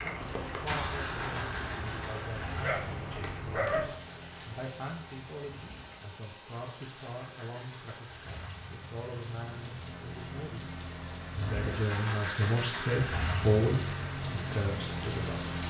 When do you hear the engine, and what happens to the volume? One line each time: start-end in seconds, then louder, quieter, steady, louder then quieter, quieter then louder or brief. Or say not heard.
0.0-15.6 quieter then louder.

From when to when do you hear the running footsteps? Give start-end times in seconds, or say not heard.
not heard.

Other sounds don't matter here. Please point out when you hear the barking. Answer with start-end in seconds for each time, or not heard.
2.6-3.8.